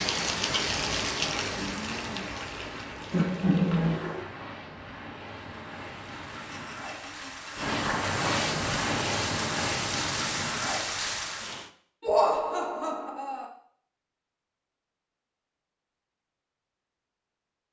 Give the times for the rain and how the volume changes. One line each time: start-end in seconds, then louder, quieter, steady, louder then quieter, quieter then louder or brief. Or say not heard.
0.0-11.7 quieter then louder.